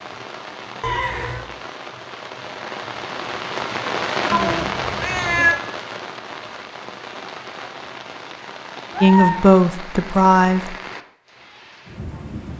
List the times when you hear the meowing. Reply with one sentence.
The meowing can be heard from 0.8 to 1.4 s, from 4.3 to 5.6 s and from 8.9 to 9.4 s.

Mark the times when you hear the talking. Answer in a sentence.
You can hear the talking from 9.0 to 10.8 s.